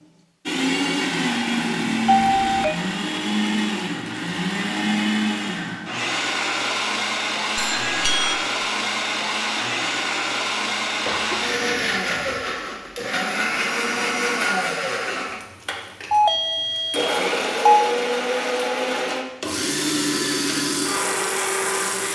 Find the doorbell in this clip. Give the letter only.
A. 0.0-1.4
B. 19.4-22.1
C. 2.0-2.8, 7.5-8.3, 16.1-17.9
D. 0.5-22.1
C.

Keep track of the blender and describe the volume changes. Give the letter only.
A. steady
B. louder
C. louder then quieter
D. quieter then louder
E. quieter
A.